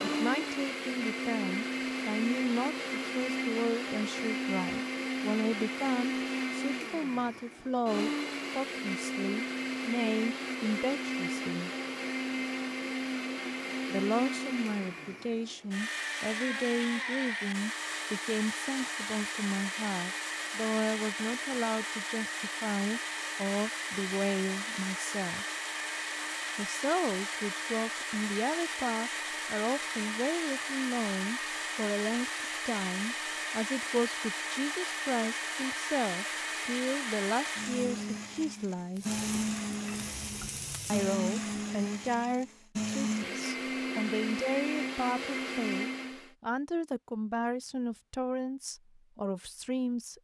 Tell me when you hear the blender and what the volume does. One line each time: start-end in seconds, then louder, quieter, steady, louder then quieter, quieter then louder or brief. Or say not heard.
0.0-46.3 steady.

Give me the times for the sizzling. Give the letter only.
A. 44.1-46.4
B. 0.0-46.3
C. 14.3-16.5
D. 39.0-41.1
D.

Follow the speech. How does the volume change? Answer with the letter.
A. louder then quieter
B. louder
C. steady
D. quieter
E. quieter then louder
C.